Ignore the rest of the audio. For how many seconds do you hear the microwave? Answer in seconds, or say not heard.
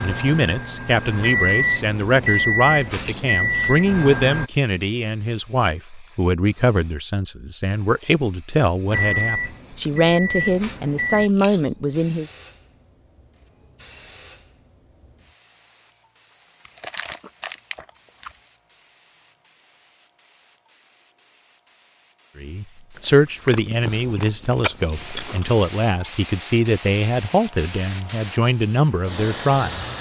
7 s.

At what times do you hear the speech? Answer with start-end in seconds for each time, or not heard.
0.0-12.3, 22.4-29.9.